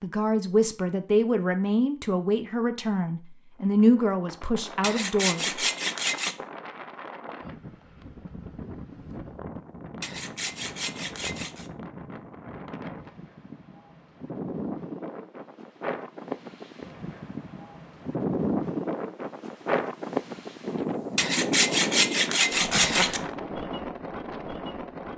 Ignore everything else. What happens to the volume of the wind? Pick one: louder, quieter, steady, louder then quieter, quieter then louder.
louder.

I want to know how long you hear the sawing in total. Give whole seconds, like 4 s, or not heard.
5 s.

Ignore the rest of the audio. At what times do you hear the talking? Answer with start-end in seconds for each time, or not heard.
0.0-5.5.